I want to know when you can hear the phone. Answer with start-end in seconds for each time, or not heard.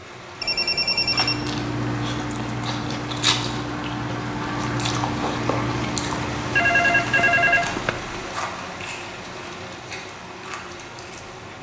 0.4-1.4, 6.5-8.0.